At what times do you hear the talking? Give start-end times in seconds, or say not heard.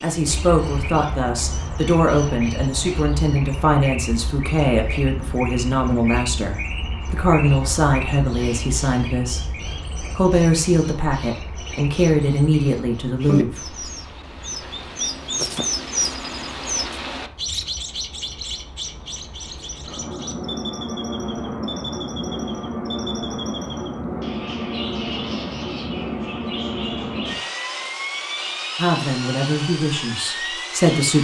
0.0-9.4, 10.2-13.8, 28.8-31.1.